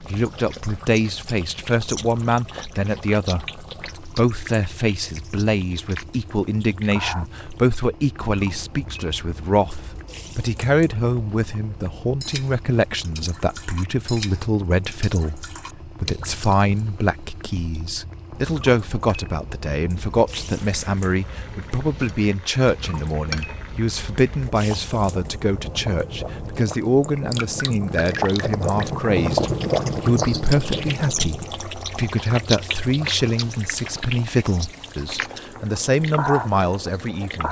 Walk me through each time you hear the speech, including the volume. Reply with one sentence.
The speech can be heard from 0.0 to 37.4 s, at a steady volume.